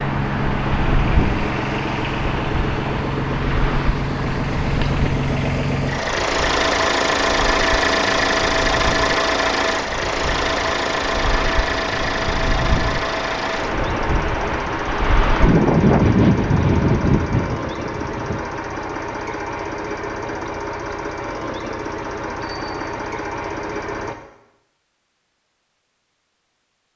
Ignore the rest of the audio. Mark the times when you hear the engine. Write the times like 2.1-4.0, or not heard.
0.0-24.1.